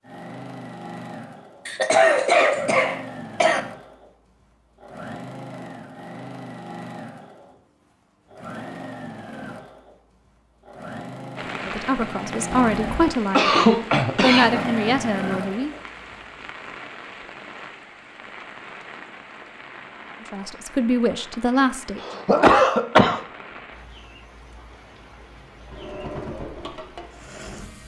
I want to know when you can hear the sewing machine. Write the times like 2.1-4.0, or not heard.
0.0-16.2, 25.6-27.8.